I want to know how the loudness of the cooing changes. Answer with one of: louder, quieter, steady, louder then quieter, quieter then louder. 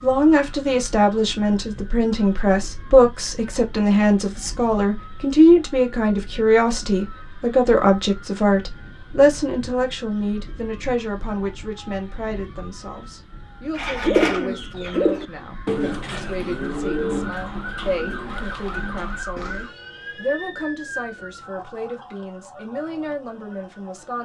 quieter.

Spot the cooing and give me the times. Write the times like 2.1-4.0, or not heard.
13.8-19.7.